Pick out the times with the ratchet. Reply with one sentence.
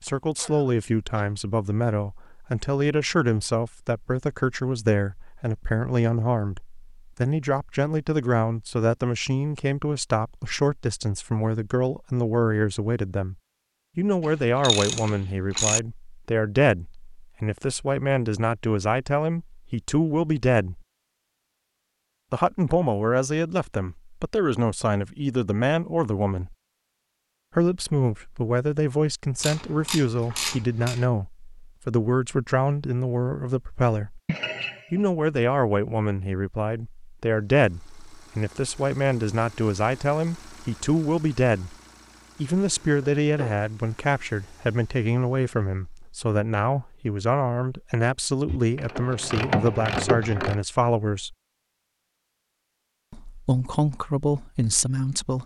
The ratchet can be heard from 14.2 to 15.8 s, from 29.4 to 31.1 s and from 48.5 to 50.6 s.